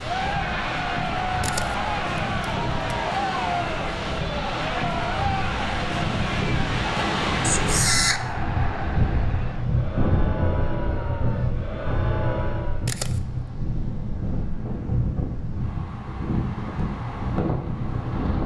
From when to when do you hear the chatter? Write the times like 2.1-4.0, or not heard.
0.0-12.9.